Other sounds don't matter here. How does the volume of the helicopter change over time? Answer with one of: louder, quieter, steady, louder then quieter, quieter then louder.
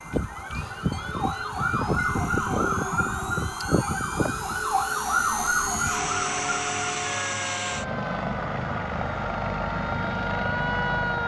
steady.